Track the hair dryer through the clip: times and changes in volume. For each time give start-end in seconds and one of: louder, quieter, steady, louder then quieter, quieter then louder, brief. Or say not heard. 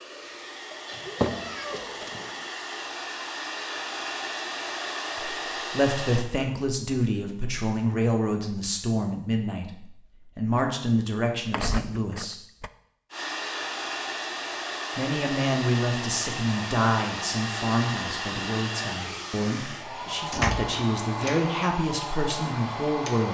0.0-6.2 louder
13.1-23.2 steady.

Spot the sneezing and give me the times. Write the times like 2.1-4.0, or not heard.
0.7-2.0, 20.8-21.4.